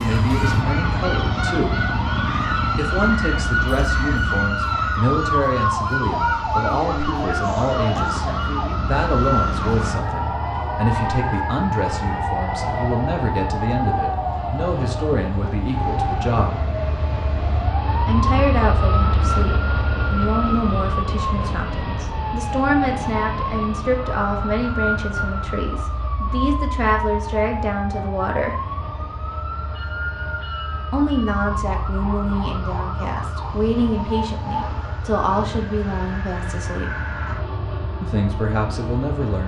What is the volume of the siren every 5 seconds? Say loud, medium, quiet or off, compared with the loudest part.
loud, loud, loud, medium, medium, medium, medium, quiet.